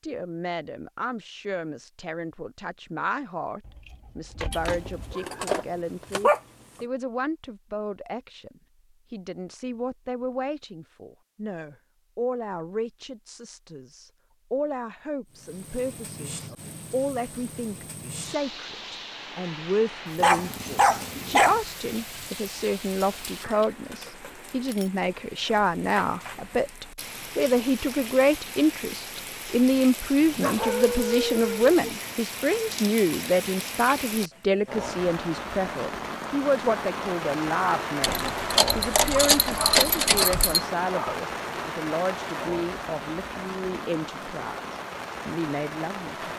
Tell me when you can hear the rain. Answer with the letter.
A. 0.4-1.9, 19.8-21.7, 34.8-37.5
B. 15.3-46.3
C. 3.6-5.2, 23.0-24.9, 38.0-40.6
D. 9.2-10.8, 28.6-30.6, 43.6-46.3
B.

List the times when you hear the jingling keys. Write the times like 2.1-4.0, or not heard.
3.6-5.2, 23.0-24.9, 38.0-40.6.